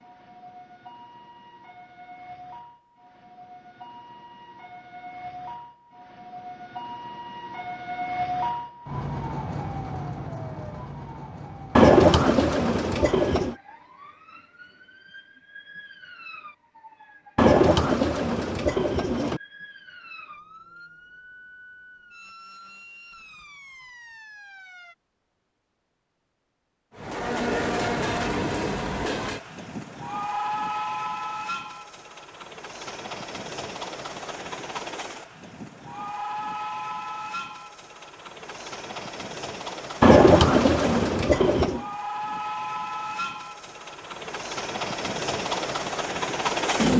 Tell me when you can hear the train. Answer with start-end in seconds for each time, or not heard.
26.9-46.9.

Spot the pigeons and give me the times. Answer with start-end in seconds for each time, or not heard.
11.8-13.6, 17.4-19.4, 40.0-41.8.